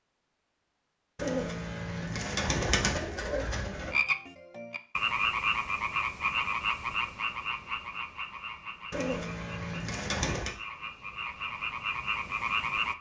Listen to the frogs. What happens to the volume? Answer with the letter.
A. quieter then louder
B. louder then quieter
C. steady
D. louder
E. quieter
A.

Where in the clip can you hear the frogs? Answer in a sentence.
The frogs can be heard from 3.8 to 12.9 s.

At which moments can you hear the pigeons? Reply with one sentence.
You can hear the pigeons from 1.1 to 4.0 s and from 8.9 to 10.6 s.